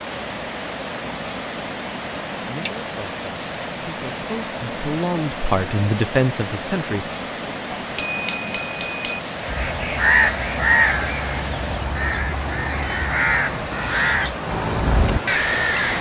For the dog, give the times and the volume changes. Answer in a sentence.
The dog can't be heard in this clip.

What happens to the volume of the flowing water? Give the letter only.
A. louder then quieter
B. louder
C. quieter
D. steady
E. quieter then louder
D.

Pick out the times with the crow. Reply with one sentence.
The crow can be heard from 9.4 to 15.9 s.